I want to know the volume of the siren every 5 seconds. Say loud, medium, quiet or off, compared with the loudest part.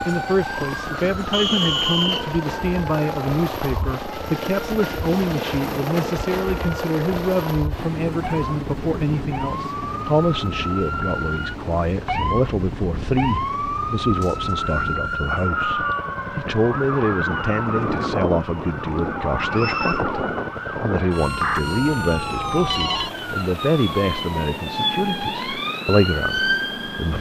medium, medium, loud, loud, loud, loud.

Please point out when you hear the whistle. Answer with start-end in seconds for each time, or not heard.
1.3-2.4, 14.2-15.6, 19.4-20.1.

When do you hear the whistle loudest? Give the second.
2 s.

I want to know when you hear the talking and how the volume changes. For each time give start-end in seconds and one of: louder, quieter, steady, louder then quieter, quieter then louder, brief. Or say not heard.
0.1-27.1 steady.